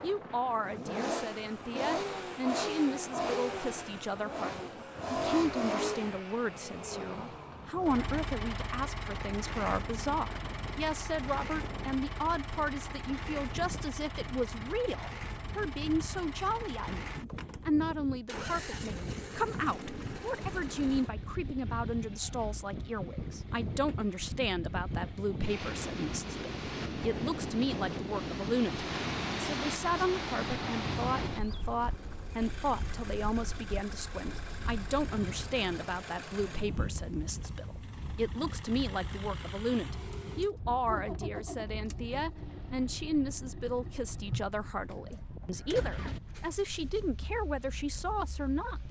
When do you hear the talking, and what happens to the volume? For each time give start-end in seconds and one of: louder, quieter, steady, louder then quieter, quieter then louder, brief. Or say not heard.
0.0-48.8 steady.